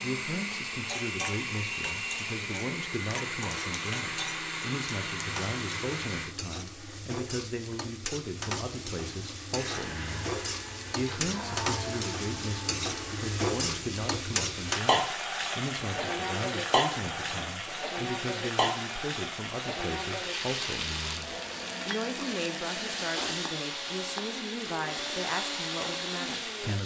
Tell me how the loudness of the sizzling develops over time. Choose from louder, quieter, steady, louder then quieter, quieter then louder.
louder then quieter.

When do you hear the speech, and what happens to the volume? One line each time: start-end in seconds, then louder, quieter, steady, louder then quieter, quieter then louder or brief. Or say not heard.
0.0-26.8 steady.